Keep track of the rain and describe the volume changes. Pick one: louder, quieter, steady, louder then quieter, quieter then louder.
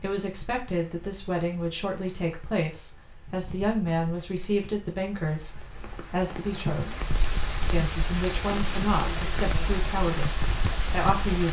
louder.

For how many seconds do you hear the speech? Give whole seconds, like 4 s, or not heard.
11 s.